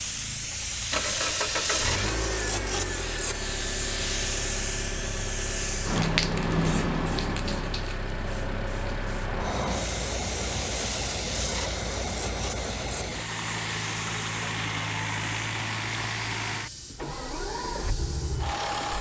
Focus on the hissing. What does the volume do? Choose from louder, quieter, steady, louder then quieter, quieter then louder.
quieter.